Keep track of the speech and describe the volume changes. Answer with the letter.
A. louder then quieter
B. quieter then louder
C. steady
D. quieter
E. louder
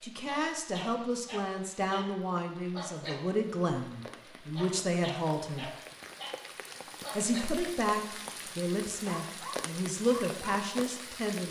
C.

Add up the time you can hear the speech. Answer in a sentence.
You can hear the speech for 10 seconds altogether.